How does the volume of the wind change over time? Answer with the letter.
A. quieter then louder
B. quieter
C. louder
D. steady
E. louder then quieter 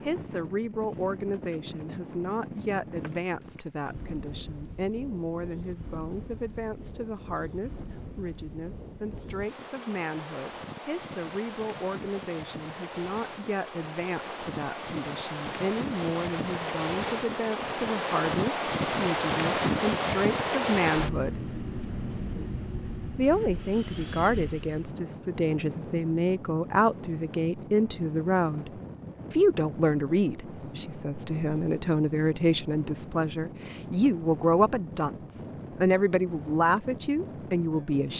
E.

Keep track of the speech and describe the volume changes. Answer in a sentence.
The loudness of the speech goes up.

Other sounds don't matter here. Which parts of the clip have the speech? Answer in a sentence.
You can hear the speech from 0.0 to 21.4 s and from 23.1 to 38.1 s.